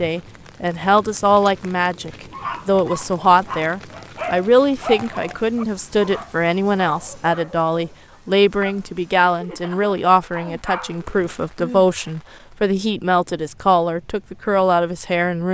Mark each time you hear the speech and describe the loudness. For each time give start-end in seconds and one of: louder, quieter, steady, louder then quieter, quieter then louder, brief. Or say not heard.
0.0-15.4 steady.